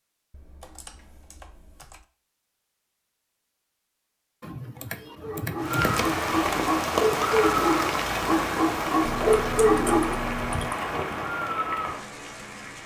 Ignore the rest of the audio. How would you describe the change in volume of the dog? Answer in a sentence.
The volume of the dog goes up.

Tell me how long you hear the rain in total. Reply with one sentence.
You can hear the rain for 7 seconds altogether.